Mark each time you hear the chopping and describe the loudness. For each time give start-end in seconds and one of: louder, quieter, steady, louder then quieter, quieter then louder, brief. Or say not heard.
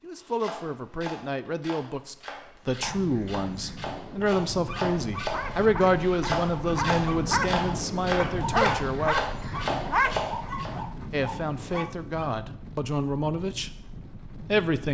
0.1-10.8 louder.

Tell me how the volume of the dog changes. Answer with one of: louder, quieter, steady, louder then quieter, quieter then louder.
louder then quieter.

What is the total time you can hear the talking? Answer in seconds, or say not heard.
13 s.